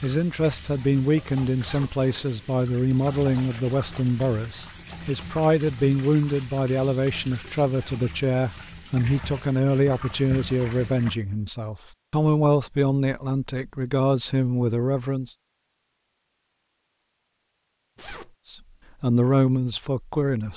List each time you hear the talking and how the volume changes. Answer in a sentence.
You can hear the talking from 0.0 to 15.3 s, at a steady volume; and briefly from 18.4 to 20.5 s.